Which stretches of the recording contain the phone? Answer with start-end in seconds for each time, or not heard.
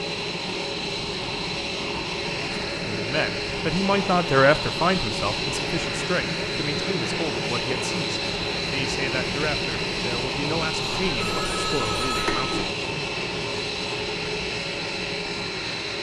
11.0-12.7.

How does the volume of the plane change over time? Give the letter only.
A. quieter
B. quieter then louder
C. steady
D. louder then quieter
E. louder
C.